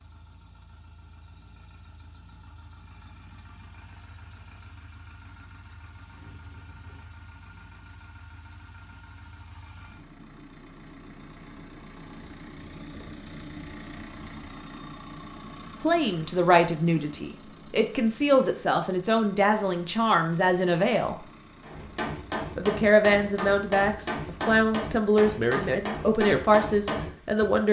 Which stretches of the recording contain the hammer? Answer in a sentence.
The hammer can be heard from 21.6 to 27.1 s.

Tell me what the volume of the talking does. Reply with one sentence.
The loudness of the talking stays about the same.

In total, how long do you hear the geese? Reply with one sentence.
The geese can't be heard in this clip.